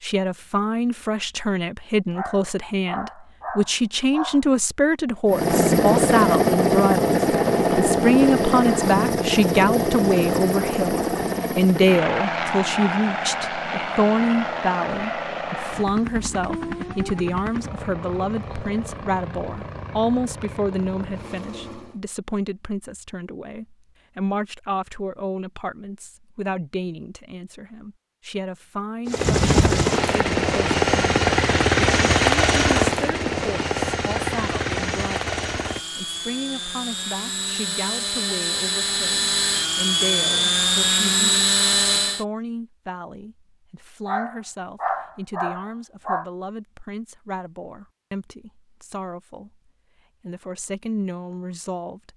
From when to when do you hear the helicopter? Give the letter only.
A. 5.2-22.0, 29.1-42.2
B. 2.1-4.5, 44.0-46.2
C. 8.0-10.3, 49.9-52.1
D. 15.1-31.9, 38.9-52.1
A.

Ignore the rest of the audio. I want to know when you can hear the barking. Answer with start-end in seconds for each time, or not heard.
2.1-4.5, 44.0-46.2.